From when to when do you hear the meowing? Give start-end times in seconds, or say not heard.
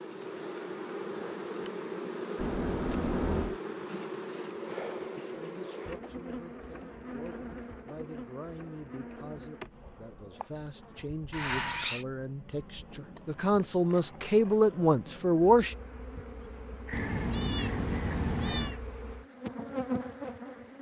2.4-3.6, 11.3-12.1, 16.9-18.8.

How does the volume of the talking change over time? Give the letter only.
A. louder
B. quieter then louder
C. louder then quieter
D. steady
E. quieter
A.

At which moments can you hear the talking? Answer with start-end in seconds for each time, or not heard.
5.3-15.8.